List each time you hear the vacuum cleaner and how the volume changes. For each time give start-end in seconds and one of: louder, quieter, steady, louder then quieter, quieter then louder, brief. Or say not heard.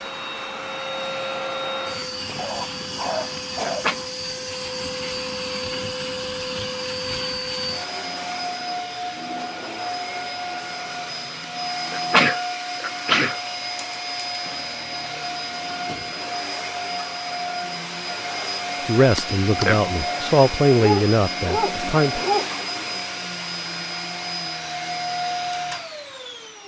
0.0-26.6 steady.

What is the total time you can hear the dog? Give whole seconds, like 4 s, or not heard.
3 s.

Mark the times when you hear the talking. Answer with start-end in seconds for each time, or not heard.
18.9-22.2.